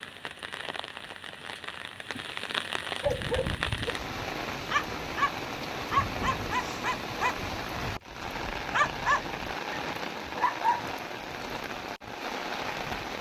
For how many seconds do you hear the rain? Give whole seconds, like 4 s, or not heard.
13 s.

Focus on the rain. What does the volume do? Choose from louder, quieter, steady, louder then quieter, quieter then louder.
steady.